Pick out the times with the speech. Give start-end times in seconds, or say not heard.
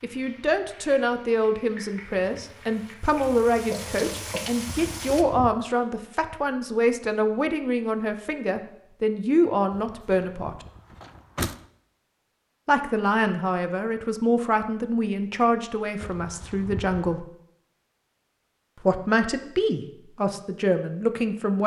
0.0-10.6, 12.7-17.2, 18.8-21.6.